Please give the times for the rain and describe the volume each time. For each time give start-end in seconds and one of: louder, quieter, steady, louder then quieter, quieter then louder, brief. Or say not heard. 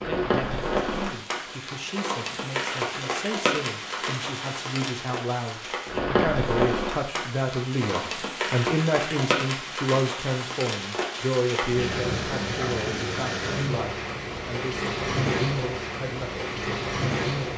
0.0-17.5 steady.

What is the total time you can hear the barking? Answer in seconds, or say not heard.
not heard.